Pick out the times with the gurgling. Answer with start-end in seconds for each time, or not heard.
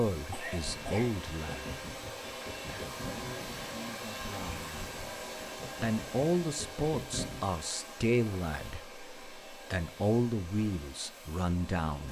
0.6-7.4.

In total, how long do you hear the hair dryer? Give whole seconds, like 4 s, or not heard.
12 s.